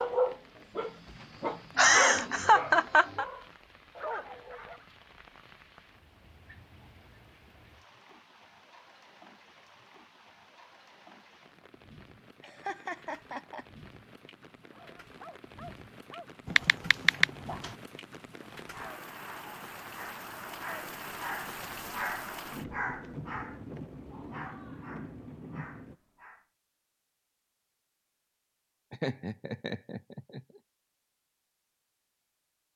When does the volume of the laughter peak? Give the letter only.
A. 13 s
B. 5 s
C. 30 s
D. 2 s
D.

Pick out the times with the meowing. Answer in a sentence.
The meowing can't be heard in this clip.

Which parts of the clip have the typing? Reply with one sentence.
You can hear the typing from 16.4 to 17.8 s.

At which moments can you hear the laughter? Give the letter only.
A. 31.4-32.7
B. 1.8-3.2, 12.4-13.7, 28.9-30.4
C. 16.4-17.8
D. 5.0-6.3
B.